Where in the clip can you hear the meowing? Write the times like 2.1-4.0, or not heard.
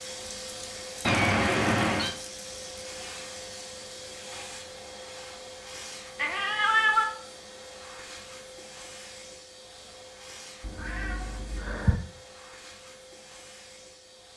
1.0-2.1, 6.2-7.0, 10.6-12.0.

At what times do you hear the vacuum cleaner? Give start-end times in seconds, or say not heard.
0.0-14.3.